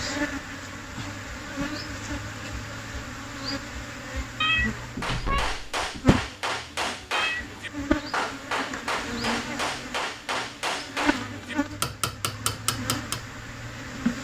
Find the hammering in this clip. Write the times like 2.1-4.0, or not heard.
4.8-13.3.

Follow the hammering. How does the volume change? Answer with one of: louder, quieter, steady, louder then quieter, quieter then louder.
steady.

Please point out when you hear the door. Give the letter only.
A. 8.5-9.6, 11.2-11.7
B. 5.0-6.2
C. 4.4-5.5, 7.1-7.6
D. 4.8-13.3
B.